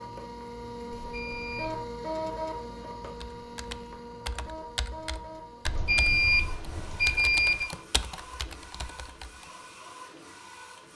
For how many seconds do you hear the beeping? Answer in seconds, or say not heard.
3 s.